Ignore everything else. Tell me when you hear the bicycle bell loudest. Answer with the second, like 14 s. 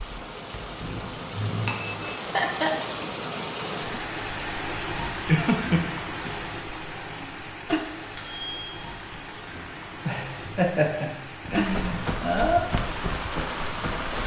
2 s.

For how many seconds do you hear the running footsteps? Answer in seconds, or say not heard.
3 s.